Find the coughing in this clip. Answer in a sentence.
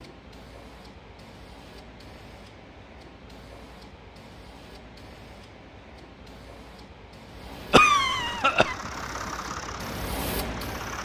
You can hear the coughing from 7.7 to 8.8 s.